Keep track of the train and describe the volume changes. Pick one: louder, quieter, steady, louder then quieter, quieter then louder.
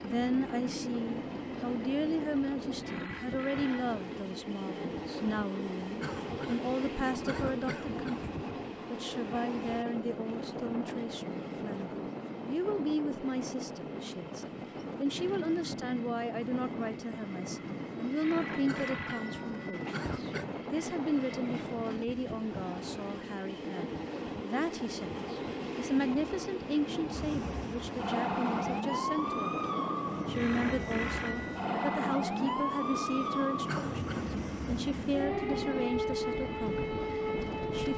steady.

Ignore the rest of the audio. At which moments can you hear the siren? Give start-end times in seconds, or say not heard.
27.1-37.9.